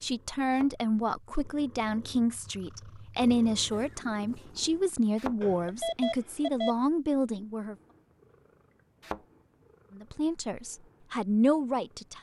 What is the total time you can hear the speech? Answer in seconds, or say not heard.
10 s.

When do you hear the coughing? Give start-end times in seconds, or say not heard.
not heard.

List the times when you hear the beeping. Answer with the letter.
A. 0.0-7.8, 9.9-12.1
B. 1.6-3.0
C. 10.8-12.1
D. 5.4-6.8
D.